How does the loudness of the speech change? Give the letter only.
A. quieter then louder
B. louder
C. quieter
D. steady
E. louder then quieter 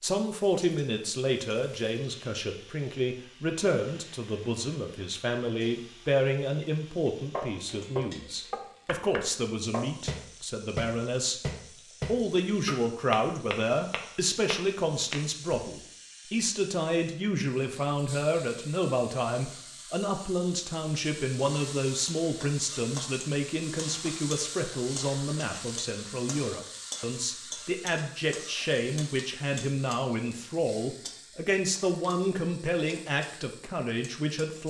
D.